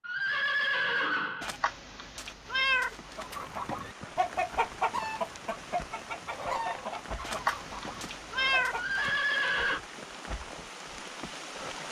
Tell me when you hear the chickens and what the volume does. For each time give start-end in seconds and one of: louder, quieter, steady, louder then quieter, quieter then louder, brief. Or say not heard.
3.1-9.2 quieter.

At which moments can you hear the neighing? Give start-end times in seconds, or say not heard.
0.0-1.5, 8.7-9.8.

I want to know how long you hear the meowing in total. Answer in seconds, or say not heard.
4 s.